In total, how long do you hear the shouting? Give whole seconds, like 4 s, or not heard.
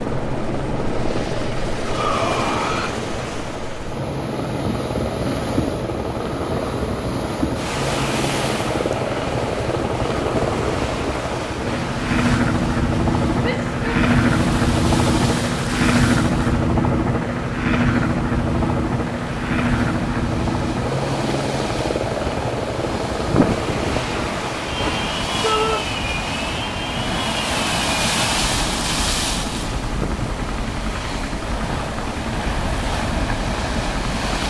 2 s.